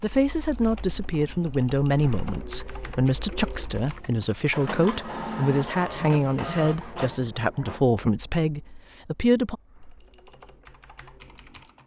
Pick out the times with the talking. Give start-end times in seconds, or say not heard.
0.0-9.6.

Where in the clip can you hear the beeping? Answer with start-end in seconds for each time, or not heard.
not heard.